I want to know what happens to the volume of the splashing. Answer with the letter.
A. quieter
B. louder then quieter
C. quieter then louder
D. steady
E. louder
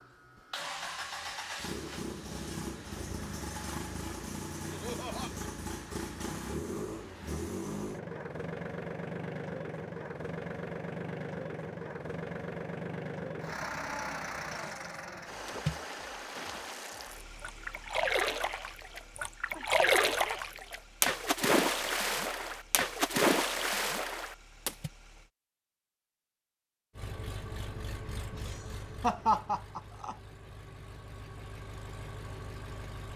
E.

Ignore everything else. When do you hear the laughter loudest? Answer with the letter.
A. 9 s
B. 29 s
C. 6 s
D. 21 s
B.